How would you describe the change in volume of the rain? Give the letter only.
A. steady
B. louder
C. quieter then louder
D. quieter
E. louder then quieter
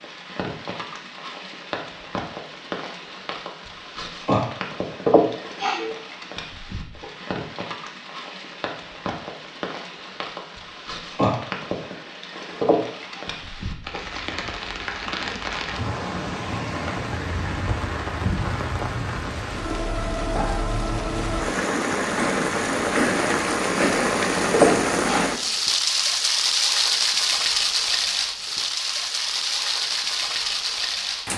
B.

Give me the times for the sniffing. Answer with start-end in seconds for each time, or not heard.
5.0-5.9, 12.6-13.2, 24.5-25.3.